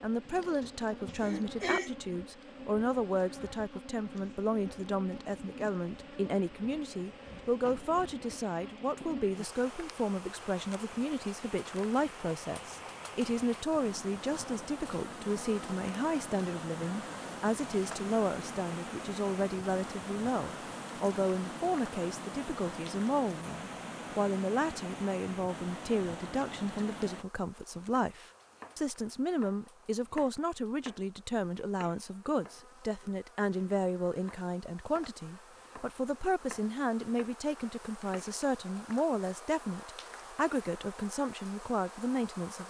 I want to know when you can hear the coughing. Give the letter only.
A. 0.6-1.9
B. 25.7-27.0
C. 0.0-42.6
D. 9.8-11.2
A.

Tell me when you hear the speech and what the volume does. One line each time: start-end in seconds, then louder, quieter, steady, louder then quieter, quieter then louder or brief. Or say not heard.
0.0-42.6 steady.